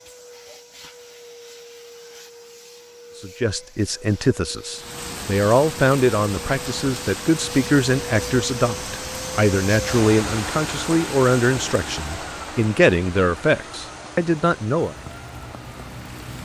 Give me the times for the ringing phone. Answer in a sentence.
You can't hear the ringing phone here.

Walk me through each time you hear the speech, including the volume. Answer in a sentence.
You can hear the speech from 3.2 to 14.9 s, at a steady volume.